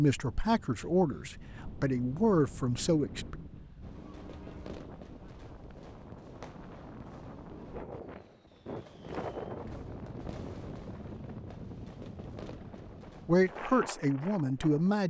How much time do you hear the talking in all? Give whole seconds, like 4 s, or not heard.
5 s.